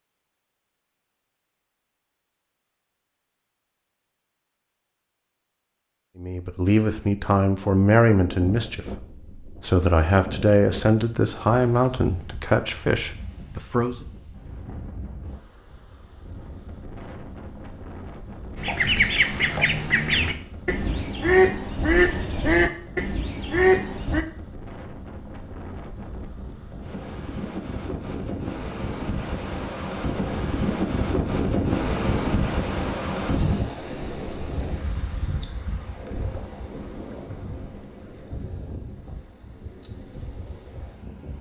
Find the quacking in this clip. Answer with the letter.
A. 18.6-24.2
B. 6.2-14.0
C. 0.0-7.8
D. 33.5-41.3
A.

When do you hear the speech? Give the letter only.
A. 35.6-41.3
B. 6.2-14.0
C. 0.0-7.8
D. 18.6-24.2
B.